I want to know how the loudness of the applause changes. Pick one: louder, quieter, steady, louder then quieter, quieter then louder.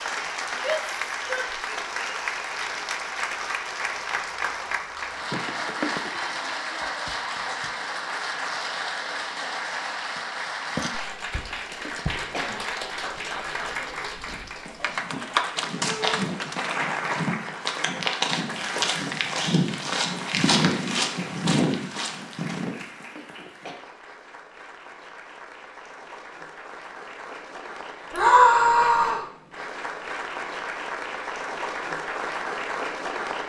quieter then louder.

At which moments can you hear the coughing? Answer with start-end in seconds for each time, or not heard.
5.3-6.1, 11.3-12.7, 22.9-23.8.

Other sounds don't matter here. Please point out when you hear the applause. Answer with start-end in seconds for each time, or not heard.
0.0-33.4.